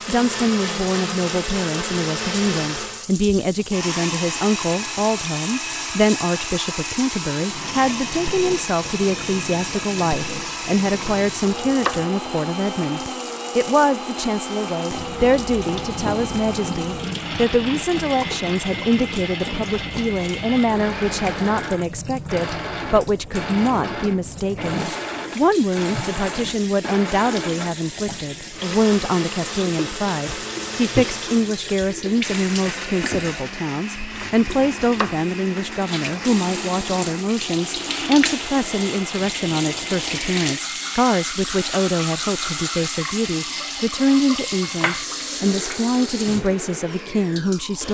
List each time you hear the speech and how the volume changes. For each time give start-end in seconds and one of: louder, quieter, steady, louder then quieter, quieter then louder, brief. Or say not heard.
0.1-47.8 steady.